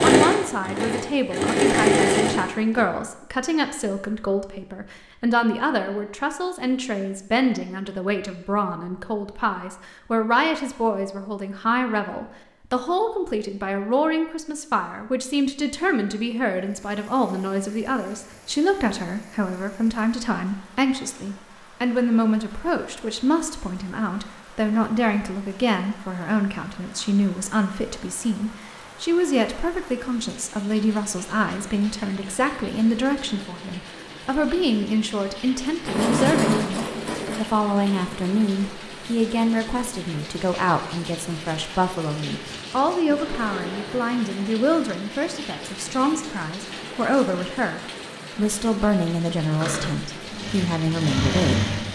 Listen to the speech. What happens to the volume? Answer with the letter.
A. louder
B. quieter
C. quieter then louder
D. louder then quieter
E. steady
E.